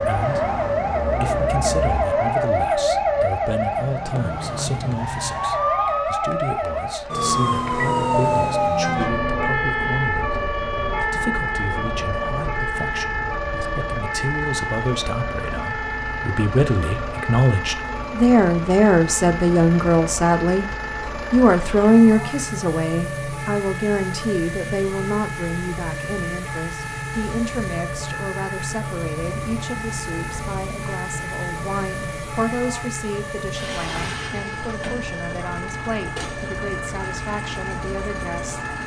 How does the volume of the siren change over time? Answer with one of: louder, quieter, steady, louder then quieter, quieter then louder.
quieter.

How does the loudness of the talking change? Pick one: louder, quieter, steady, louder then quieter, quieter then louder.
louder then quieter.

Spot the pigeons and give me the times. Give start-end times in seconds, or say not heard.
not heard.